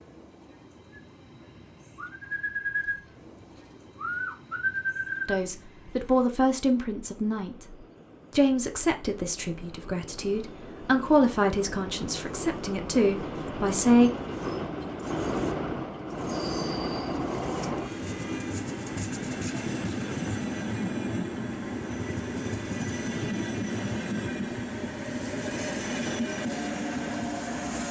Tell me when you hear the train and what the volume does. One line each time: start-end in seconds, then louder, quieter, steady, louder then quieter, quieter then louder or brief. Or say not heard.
0.0-27.8 louder.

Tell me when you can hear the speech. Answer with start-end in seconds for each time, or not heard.
5.2-14.1.